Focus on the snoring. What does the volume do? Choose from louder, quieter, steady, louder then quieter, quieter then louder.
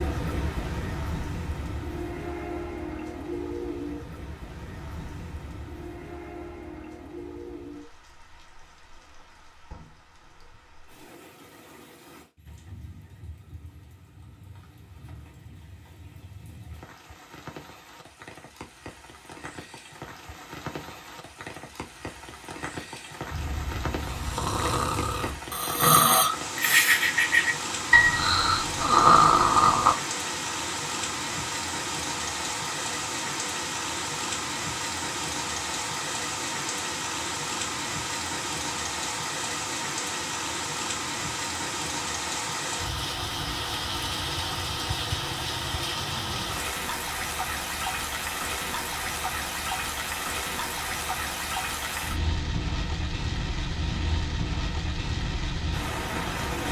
louder.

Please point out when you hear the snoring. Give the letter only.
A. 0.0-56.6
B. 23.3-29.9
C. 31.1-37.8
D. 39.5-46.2
B.